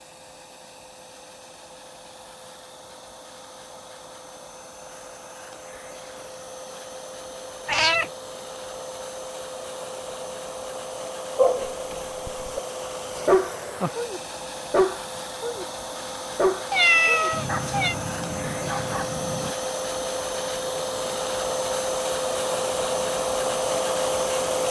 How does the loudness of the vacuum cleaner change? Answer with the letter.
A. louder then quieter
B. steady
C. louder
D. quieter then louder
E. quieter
C.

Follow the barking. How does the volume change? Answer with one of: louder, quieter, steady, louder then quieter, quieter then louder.
quieter.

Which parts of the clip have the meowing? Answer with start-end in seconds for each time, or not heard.
7.7-8.1, 16.7-17.9.